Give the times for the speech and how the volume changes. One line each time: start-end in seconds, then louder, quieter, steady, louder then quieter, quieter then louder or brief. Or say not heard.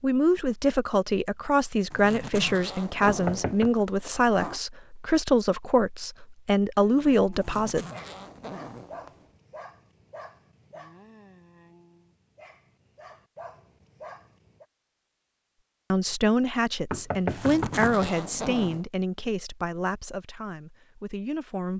0.0-7.8 steady
15.9-21.7 quieter.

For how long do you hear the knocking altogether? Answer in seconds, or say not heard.
2 s.